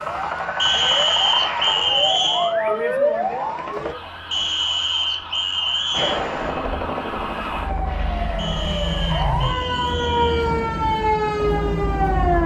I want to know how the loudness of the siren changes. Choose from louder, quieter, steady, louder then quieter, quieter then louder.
quieter then louder.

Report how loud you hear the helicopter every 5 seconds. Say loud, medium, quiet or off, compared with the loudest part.
loud, loud, off.